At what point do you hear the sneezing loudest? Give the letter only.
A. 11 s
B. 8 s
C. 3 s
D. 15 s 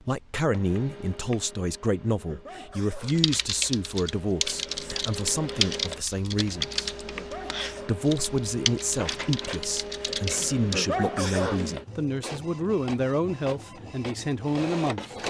A.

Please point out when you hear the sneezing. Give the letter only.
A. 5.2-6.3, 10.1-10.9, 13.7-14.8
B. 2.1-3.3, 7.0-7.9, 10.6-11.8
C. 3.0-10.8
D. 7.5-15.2
B.